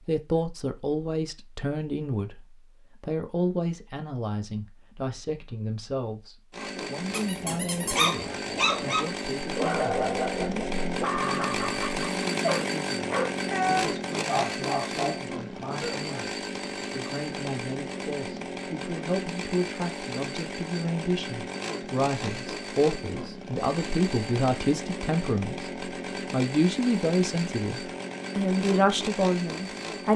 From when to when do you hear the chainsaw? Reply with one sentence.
The chainsaw can be heard from 6.5 to 30.1 s.